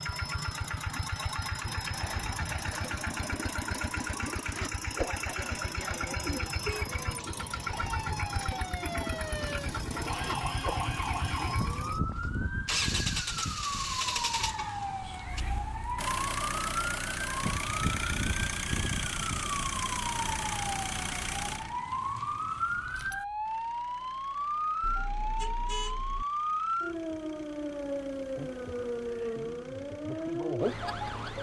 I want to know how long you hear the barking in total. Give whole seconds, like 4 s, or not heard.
not heard.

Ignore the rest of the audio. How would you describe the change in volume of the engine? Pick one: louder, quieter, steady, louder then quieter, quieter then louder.
quieter.